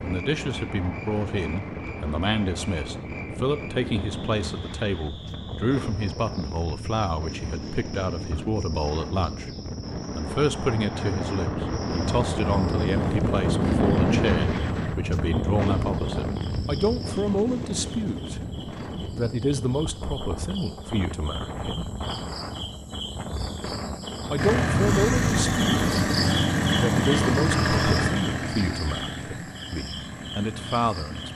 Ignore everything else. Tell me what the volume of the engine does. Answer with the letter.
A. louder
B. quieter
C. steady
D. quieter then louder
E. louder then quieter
B.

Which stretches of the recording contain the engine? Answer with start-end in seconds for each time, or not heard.
24.4-31.3.